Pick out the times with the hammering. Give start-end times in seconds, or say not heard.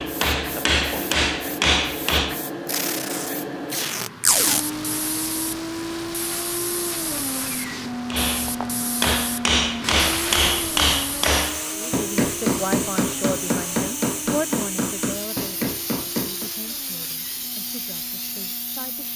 0.0-2.4, 8.1-16.5.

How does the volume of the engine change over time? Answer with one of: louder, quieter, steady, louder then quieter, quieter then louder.
quieter.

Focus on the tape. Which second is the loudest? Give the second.
4 s.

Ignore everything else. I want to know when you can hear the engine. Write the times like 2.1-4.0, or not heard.
4.4-19.1.